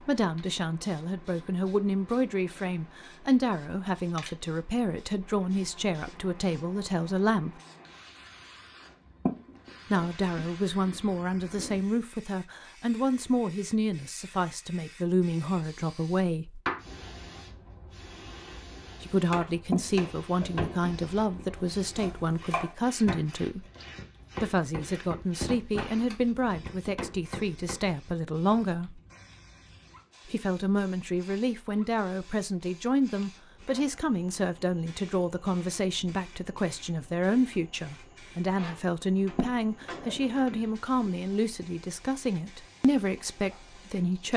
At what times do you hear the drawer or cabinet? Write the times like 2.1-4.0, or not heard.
not heard.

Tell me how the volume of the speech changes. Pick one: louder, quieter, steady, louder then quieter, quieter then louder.
steady.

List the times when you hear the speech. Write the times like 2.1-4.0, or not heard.
0.0-7.5, 9.9-16.6, 19.0-23.6, 24.4-29.0, 30.2-44.3.